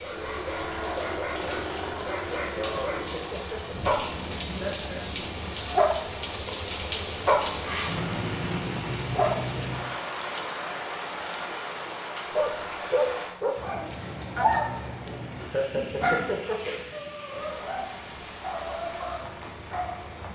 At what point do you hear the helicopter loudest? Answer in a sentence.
The volume of the helicopter peaks at 1 second.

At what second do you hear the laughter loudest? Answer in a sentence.
The volume of the laughter peaks at 16 seconds.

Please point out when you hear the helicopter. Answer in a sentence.
You can hear the helicopter from 0.0 to 5.5 s.